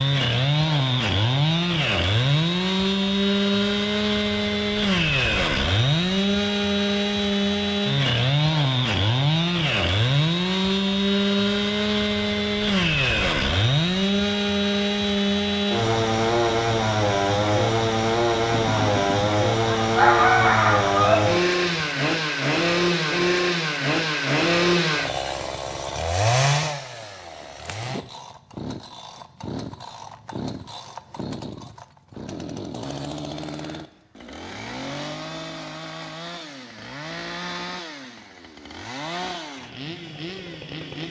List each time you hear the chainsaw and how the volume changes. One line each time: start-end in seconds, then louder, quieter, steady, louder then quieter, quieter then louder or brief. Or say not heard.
0.0-41.0 quieter.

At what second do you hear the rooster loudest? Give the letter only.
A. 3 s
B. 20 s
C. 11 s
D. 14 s
B.